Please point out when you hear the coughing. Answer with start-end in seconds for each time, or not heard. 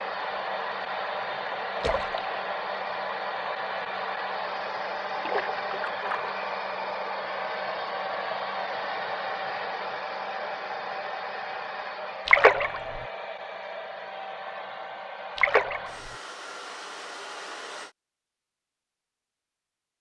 not heard.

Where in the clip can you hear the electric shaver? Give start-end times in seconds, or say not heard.
not heard.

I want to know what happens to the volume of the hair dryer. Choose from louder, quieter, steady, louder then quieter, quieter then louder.
quieter.